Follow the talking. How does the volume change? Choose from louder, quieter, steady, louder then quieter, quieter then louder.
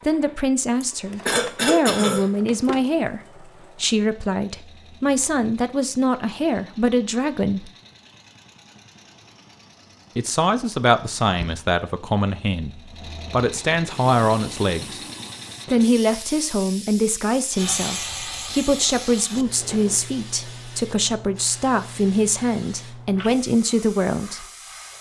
steady.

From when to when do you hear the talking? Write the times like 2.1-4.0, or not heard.
0.0-7.7, 10.2-15.0, 15.7-24.4.